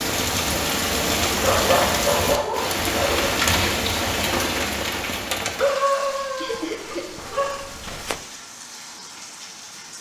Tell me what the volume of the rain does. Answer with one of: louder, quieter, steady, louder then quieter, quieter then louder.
quieter.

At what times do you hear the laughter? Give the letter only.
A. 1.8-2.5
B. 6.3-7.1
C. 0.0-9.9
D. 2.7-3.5
B.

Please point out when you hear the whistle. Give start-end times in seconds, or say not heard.
not heard.